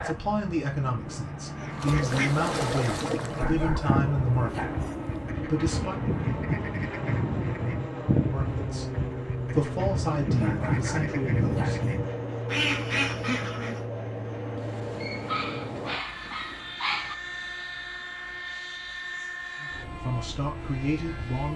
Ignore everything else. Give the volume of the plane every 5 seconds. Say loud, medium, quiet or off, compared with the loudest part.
loud, loud, loud, loud, medium.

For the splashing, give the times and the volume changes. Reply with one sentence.
You can't hear the splashing here.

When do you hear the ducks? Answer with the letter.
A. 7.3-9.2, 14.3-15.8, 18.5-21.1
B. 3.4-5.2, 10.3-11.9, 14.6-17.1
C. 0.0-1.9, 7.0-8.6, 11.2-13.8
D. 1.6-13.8
D.